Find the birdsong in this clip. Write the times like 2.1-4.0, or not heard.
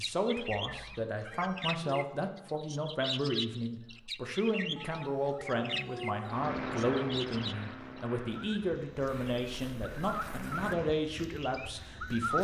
0.0-12.3.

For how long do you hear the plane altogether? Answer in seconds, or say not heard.
5 s.